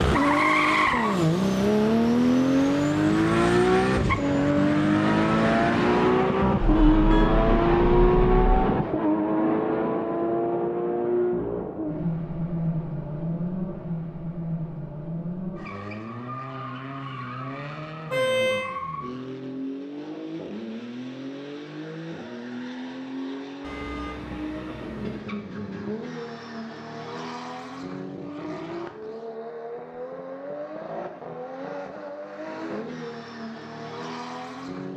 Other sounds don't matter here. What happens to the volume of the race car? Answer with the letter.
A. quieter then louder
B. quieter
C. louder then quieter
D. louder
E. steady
B.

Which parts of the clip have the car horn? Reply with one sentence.
The car horn can be heard from 6.6 to 8.6 s, from 18.1 to 18.7 s and from 23.6 to 25.2 s.